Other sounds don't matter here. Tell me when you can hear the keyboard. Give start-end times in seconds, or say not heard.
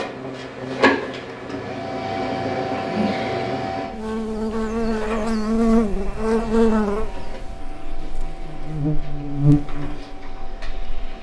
not heard.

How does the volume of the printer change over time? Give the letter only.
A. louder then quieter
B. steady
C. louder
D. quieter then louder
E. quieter
E.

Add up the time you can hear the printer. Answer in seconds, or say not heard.
11 s.